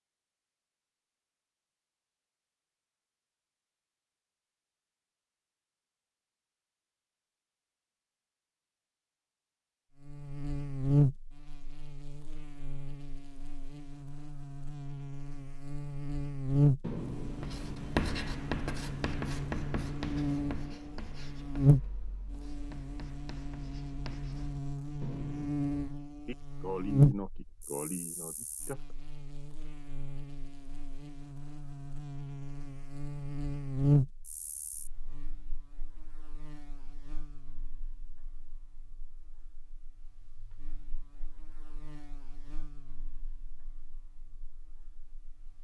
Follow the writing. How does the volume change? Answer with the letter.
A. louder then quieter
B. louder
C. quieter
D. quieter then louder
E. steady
D.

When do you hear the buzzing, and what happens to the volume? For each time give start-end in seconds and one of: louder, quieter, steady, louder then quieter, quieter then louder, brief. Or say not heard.
10.0-45.5 quieter.